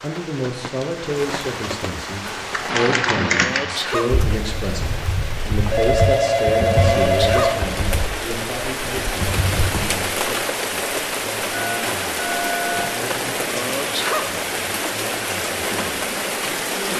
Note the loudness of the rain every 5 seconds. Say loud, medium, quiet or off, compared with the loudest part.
medium, loud, loud, loud.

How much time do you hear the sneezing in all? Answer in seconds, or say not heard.
3 s.